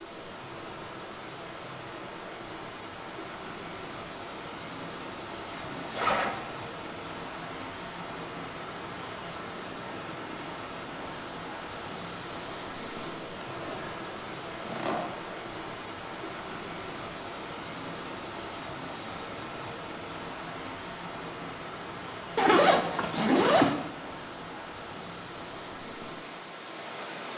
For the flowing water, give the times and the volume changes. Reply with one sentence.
The flowing water can be heard from 0.0 to 27.3 s, at a steady volume.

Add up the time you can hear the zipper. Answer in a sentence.
You can hear the zipper for 4 seconds altogether.